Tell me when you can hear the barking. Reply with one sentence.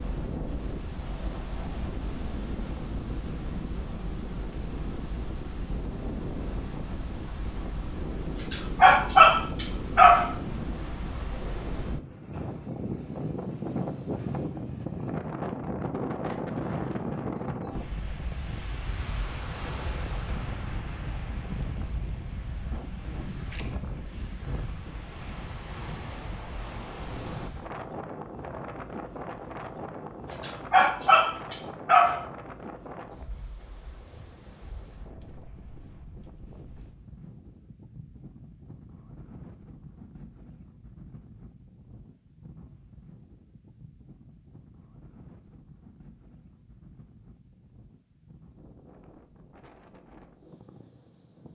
You can hear the barking from 8.3 to 10.3 s and from 30.3 to 32.2 s.